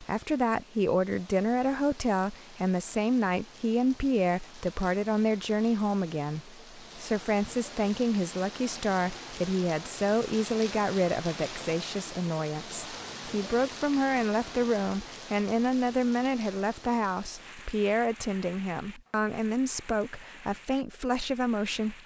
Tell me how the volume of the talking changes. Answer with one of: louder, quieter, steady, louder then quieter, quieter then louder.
steady.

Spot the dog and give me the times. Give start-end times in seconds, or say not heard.
not heard.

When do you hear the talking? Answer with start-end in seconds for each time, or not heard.
0.0-22.0.